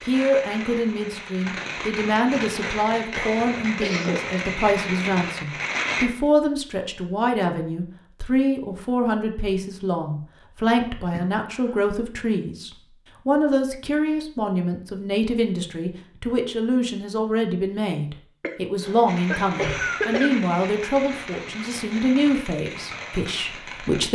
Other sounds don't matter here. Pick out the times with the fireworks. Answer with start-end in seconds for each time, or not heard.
0.0-6.0, 19.1-24.1.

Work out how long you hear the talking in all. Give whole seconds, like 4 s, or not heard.
24 s.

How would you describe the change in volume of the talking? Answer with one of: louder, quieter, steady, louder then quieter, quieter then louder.
steady.